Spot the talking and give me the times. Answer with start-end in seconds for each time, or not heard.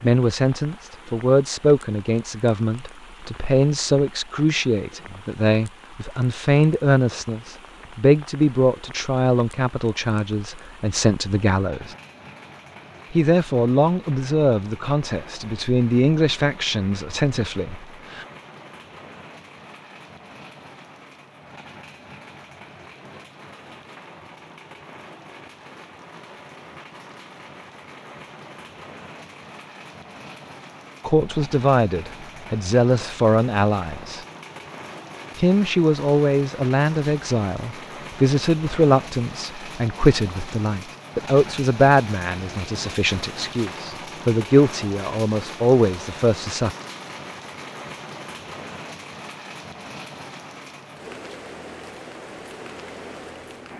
0.0-11.9, 13.1-18.2, 31.1-34.2, 35.4-46.8.